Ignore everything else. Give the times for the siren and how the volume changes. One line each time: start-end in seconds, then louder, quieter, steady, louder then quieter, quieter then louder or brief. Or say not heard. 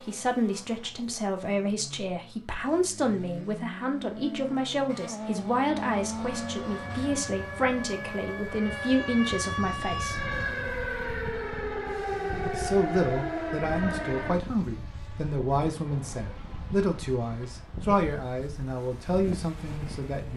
6.2-14.4 louder.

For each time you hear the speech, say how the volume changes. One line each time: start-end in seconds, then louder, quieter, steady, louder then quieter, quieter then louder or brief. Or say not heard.
0.0-10.3 steady
12.5-20.3 steady.